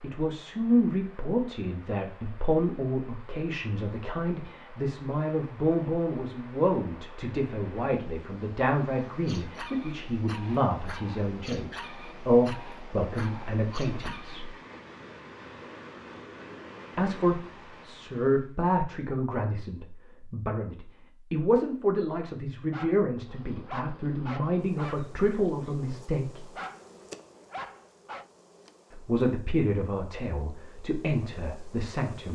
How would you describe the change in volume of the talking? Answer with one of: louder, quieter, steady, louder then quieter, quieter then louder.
steady.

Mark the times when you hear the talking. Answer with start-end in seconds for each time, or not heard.
0.0-14.5, 16.9-26.5, 28.9-32.3.